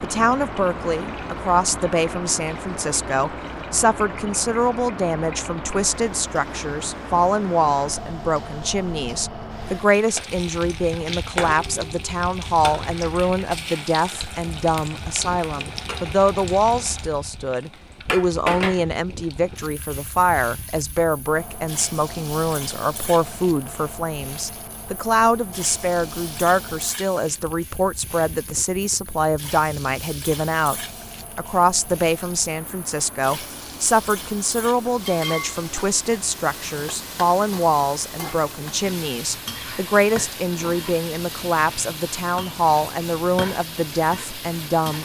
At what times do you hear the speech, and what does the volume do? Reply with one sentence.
The speech can be heard from 0.0 to 30.8 s, at a steady volume; and from 31.4 to 44.9 s, at a steady volume.